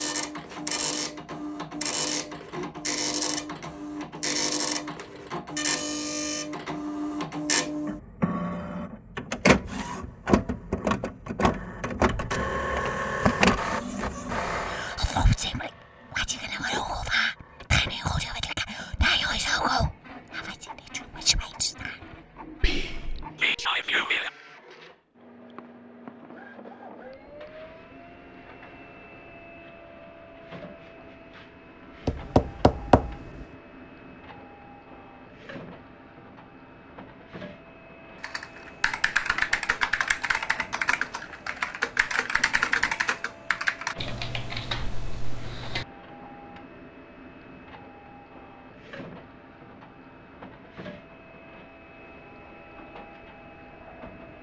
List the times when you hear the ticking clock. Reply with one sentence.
The ticking clock can't be heard in this clip.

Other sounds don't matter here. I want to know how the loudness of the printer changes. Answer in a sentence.
The volume of the printer goes down.